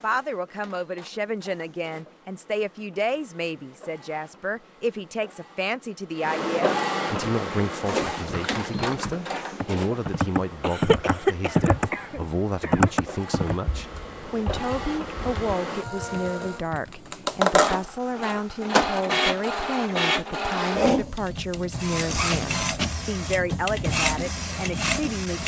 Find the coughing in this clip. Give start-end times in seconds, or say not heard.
10.6-12.9.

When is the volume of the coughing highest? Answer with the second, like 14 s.
11 s.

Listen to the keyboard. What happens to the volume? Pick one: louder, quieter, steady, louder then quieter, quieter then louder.
louder then quieter.